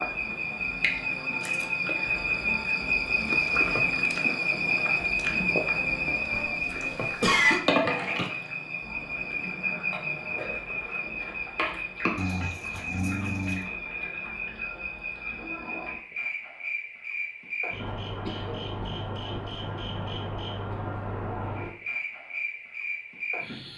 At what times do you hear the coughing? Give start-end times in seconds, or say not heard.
6.3-7.6, 18.2-19.2.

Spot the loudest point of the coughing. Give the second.
7 s.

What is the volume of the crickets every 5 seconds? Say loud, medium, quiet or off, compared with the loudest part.
loud, loud, medium, medium, medium.